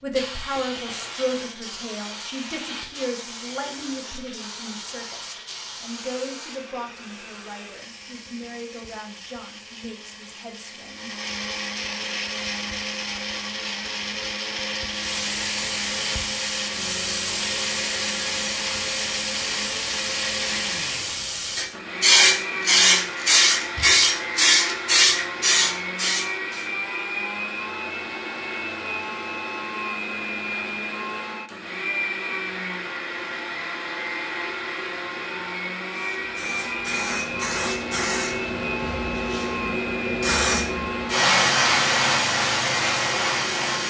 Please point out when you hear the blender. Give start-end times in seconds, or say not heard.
0.0-43.8.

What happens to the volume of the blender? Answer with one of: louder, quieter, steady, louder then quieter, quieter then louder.
louder.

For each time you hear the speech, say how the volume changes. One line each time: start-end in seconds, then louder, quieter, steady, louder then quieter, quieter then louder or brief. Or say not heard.
0.0-11.2 quieter.